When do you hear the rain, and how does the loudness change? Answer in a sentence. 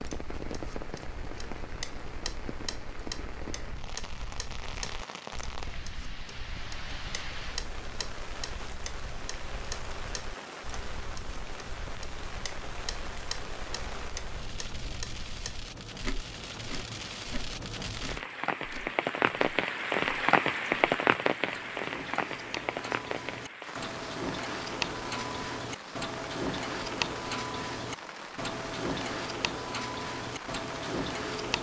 The rain can be heard from 0.0 to 31.5 s, getting louder then quieter.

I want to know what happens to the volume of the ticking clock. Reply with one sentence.
The loudness of the ticking clock goes up.